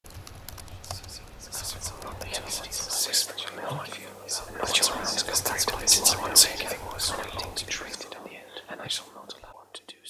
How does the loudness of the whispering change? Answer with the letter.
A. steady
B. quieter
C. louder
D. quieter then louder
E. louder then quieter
E.